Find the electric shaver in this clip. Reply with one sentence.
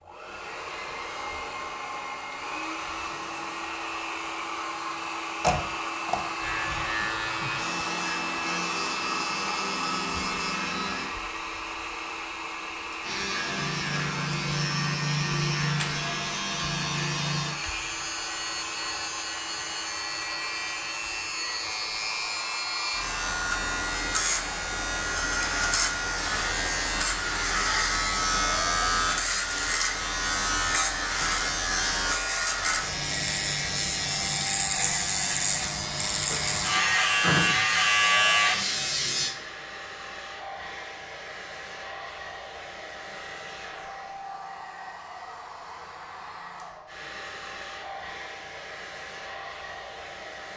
You can hear the electric shaver from 6.3 to 11.2 s and from 13.0 to 39.4 s.